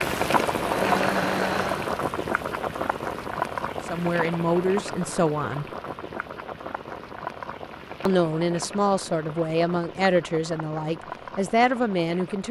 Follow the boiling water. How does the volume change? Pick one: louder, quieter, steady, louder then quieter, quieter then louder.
quieter.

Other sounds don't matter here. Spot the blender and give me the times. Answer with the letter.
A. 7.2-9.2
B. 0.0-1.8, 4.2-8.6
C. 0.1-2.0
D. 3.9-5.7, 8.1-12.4
C.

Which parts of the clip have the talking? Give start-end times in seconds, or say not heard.
3.9-5.7, 8.1-12.4.